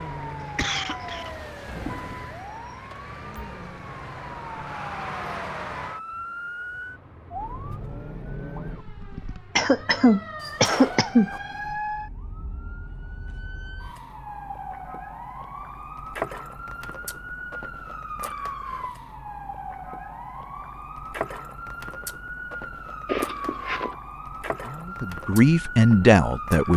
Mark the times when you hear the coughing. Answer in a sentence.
You can hear the coughing from 0.6 to 1.3 s, from 9.6 to 11.3 s and from 23.1 to 23.9 s.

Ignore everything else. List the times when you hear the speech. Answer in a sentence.
You can hear the speech from 24.6 to 26.7 s.